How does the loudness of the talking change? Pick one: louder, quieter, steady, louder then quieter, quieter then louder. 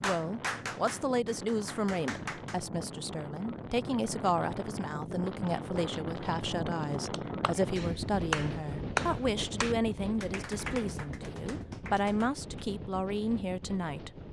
steady.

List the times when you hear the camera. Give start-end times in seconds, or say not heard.
not heard.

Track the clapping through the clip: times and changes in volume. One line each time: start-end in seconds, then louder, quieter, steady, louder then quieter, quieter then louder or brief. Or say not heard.
0.0-2.5 brief
6.8-12.7 louder then quieter.